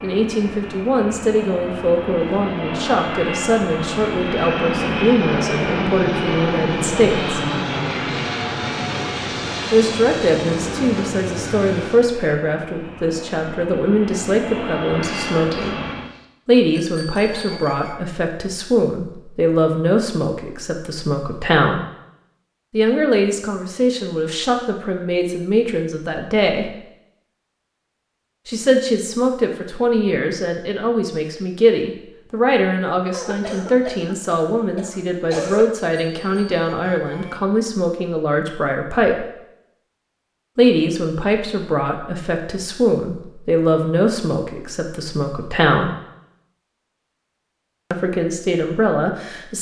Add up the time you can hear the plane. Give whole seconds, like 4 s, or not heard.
16 s.